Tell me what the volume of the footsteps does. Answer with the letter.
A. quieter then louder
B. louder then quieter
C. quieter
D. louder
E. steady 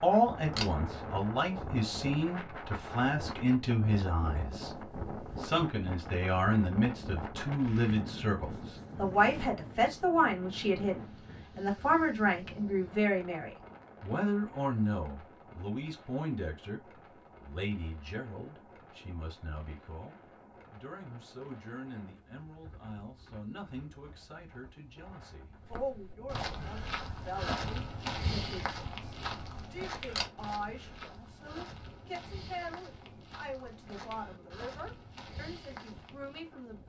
C.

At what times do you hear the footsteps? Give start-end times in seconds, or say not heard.
25.6-36.5.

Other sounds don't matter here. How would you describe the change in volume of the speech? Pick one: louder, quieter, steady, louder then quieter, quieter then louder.
quieter.